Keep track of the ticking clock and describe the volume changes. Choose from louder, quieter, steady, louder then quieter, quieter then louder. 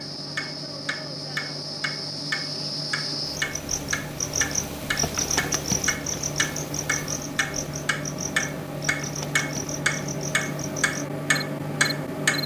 louder.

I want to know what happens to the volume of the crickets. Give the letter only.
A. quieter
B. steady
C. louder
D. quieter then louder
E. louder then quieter
E.